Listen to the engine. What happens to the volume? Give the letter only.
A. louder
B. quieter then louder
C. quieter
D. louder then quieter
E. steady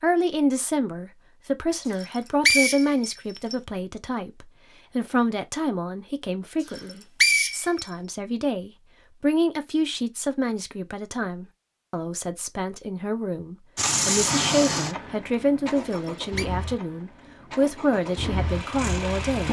B.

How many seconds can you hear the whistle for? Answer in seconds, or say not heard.
3 s.